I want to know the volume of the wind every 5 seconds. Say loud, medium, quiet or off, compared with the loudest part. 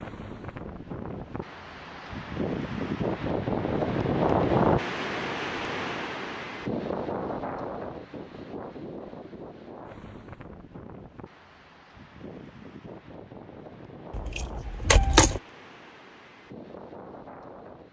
loud, medium, quiet, quiet.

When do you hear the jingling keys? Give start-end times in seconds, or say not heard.
14.1-15.4.